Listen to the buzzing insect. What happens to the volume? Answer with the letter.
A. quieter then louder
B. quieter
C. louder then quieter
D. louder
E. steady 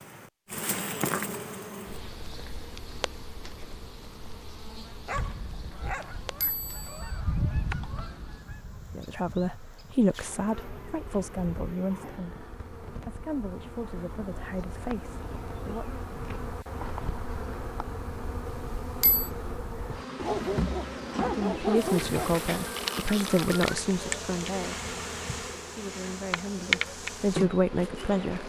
A.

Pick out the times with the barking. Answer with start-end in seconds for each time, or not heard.
5.0-6.2, 20.1-22.4.